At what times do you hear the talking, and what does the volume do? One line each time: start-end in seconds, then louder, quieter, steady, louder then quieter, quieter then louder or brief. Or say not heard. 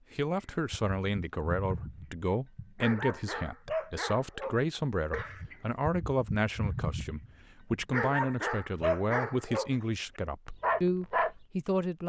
0.1-12.0 steady.